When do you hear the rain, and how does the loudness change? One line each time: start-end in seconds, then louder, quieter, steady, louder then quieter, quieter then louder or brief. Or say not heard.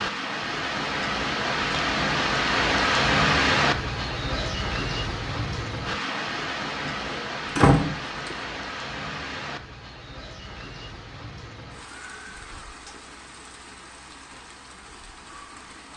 0.0-15.9 quieter.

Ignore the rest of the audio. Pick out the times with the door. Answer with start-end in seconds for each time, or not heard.
6.8-8.4.